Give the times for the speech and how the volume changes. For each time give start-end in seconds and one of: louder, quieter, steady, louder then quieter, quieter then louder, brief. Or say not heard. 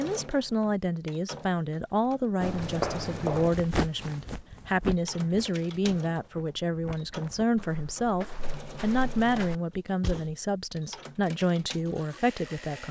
0.0-12.8 steady.